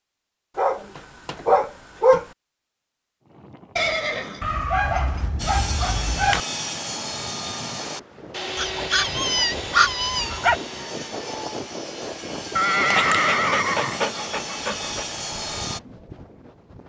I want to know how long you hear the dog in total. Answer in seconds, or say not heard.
8 s.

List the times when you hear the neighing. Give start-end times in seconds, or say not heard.
3.8-5.2, 12.6-14.2.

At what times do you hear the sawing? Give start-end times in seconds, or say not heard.
5.3-15.8.